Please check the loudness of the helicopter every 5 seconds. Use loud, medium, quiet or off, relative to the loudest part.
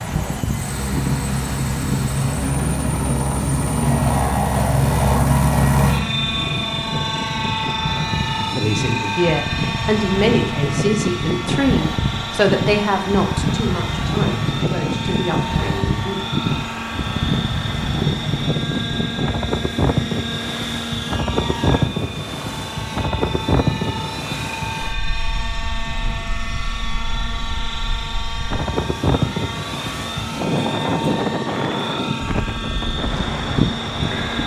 loud, loud, medium, medium, medium, medium, medium.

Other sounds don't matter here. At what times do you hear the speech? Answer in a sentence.
You can hear the speech from 8.5 to 16.2 s.